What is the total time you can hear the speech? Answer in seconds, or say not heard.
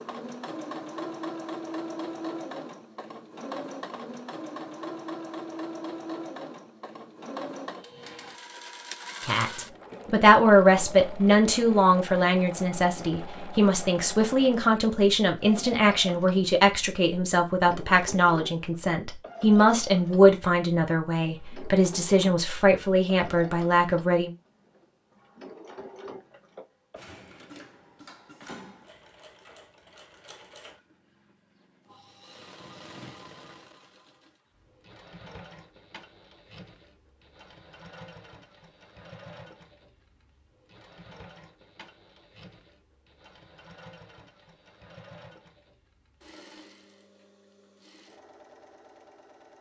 15 s.